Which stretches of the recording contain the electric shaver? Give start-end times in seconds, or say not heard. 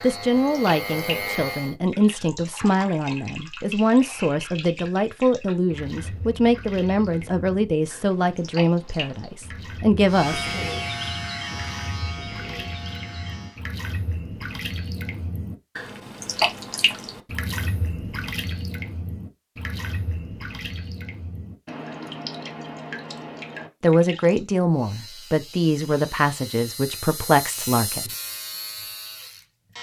0.0-1.8, 10.1-13.6, 24.7-29.7.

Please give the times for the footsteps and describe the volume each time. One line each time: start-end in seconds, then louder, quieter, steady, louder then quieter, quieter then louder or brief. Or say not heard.
not heard.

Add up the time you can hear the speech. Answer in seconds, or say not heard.
15 s.